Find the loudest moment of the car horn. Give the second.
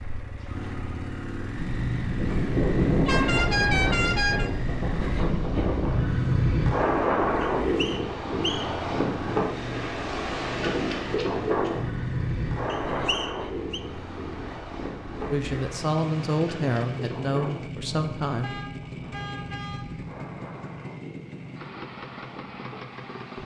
4 s.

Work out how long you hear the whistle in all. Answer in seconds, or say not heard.
2 s.